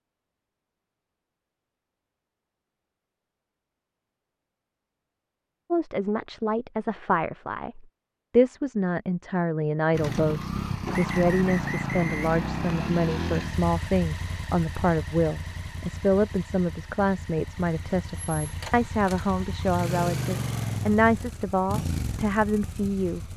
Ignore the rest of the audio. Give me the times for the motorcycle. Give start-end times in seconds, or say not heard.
9.9-23.3.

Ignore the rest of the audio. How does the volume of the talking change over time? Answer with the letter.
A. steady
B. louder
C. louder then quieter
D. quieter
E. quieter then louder
A.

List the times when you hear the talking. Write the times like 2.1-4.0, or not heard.
5.7-23.2.